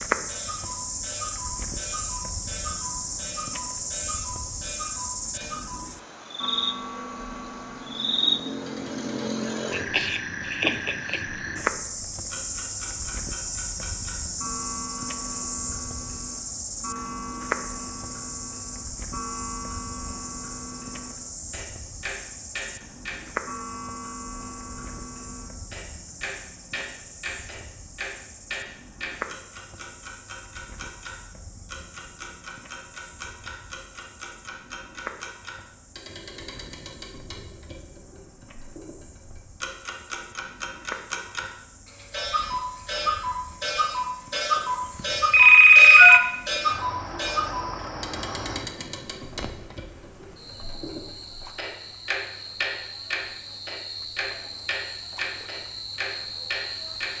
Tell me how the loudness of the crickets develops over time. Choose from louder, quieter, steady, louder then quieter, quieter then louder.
quieter then louder.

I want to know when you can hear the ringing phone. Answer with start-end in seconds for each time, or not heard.
45.3-46.2.